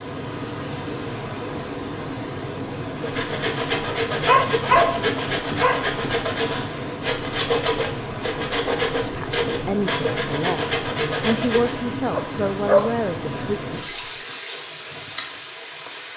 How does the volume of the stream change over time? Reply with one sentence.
The volume of the stream stays about the same.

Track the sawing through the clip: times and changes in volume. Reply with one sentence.
You can hear the sawing from 3.0 to 11.8 s, at a steady volume.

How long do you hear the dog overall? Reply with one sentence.
You can hear the dog for 3 seconds altogether.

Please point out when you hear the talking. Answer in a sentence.
The talking can be heard from 9.0 to 14.0 s.